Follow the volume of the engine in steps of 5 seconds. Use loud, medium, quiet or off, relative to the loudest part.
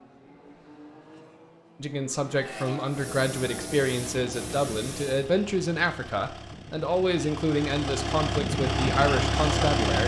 quiet, loud.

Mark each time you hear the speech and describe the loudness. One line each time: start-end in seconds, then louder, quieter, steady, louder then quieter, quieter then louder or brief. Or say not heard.
1.8-10.0 steady.